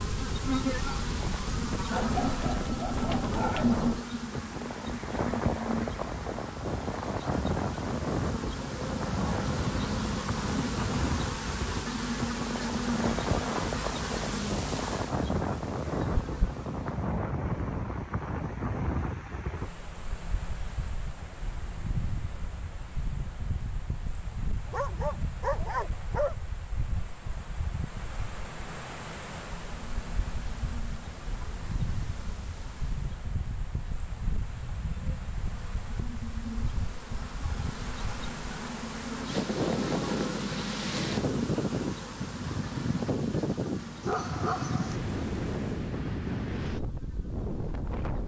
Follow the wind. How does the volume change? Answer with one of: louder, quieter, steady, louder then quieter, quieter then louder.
quieter then louder.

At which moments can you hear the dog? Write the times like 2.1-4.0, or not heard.
1.9-3.8, 24.6-26.4, 44.0-45.0.